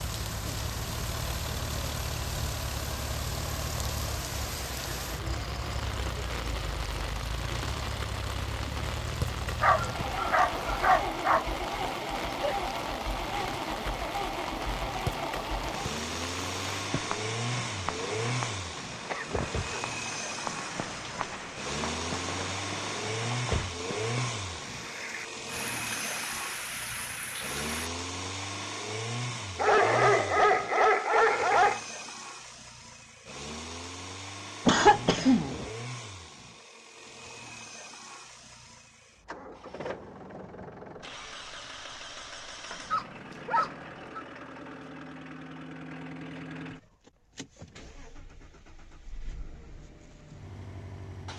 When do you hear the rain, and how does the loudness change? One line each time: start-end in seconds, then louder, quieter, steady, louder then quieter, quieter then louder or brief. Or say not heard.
0.0-27.9 steady.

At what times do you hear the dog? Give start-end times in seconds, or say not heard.
9.6-11.4, 29.6-31.9, 42.7-44.2.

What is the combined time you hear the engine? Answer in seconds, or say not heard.
51 s.